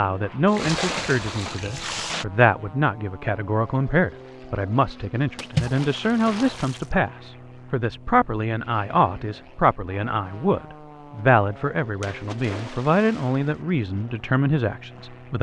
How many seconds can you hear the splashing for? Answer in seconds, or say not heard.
5 s.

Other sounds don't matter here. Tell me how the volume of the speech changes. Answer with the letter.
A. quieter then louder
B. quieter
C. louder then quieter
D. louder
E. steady
E.